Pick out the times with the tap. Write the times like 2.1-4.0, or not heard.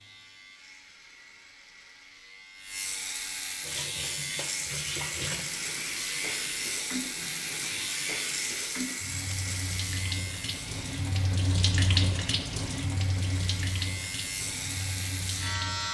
3.4-15.8.